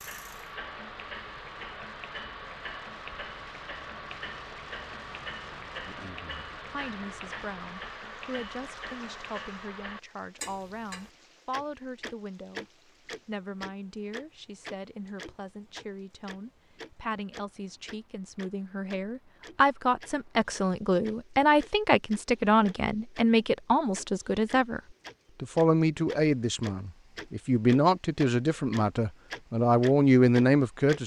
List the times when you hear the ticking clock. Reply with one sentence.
The ticking clock can be heard from 0.0 to 23.2 s and from 23.9 to 31.0 s.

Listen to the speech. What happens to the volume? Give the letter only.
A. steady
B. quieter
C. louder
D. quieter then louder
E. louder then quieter
C.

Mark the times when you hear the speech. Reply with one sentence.
The speech can be heard from 5.8 to 24.8 s and from 25.4 to 31.0 s.